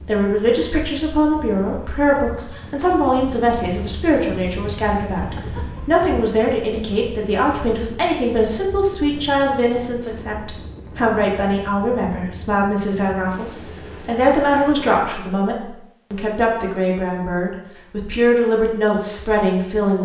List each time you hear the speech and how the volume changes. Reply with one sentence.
You can hear the speech from 0.0 to 19.9 s, at a steady volume.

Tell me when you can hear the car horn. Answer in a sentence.
The car horn can't be heard in this clip.